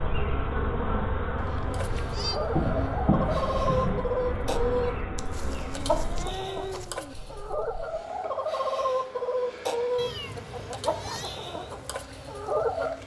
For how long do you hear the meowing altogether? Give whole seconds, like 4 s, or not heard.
4 s.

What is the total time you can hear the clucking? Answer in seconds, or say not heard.
11 s.